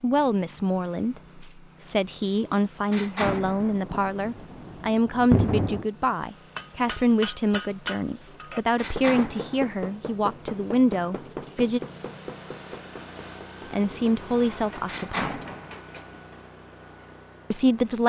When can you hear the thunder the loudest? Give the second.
5 s.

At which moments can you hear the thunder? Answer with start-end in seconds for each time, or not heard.
3.2-5.8.